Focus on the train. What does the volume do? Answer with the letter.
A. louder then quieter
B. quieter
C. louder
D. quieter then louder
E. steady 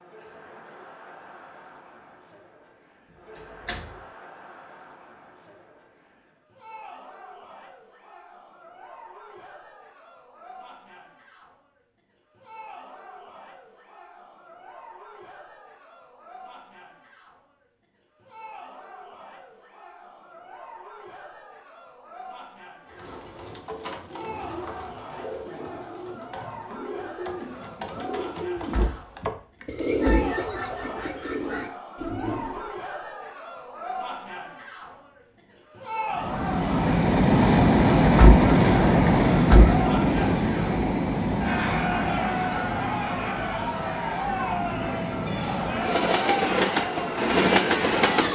D.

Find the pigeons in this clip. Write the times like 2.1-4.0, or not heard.
22.9-32.7.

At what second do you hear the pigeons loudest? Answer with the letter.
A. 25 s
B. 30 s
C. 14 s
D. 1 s
B.